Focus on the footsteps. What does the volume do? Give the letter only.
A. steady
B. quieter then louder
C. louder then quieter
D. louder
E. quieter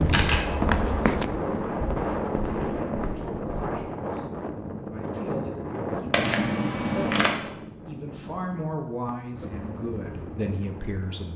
E.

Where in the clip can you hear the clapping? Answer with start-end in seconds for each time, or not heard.
not heard.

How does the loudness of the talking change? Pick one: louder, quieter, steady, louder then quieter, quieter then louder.
louder.